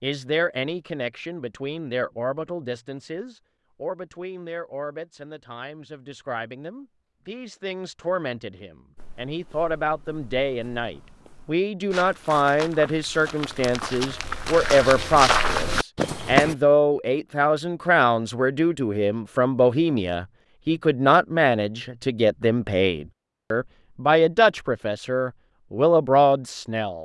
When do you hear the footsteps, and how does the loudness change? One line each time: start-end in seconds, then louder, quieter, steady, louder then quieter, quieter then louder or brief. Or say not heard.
8.9-16.6 louder.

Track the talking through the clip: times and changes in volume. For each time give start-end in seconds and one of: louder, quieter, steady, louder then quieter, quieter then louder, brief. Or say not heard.
0.0-27.0 louder.